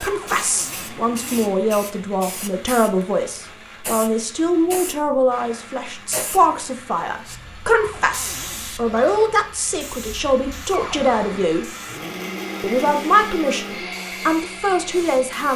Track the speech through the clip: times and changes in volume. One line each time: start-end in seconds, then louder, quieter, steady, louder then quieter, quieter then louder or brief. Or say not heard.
0.0-11.7 steady
12.6-15.5 brief.